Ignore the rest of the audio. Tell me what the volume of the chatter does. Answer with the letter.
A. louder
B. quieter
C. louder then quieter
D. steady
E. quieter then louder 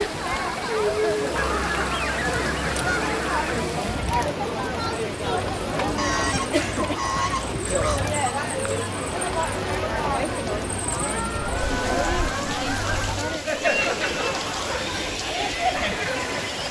D.